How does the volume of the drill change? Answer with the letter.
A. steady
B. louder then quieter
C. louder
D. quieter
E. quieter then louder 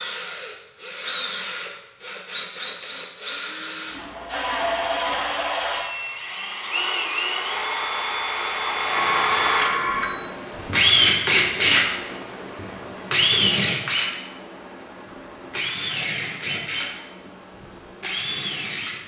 B.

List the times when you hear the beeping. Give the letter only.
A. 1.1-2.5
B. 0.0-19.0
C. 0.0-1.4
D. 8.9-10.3
D.